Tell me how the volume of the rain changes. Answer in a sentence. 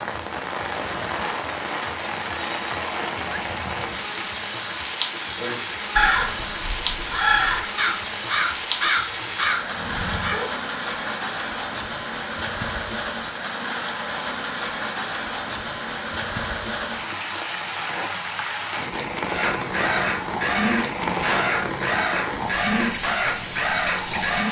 The loudness of the rain stays about the same.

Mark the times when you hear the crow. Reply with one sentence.
The crow can be heard from 5.3 to 10.5 s and from 19.2 to 24.4 s.